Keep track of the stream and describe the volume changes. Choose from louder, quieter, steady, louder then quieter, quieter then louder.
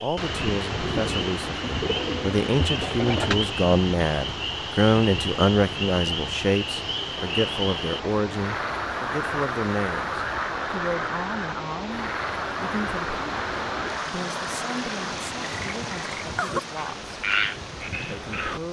steady.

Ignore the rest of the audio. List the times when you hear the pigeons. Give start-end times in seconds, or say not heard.
0.7-3.5.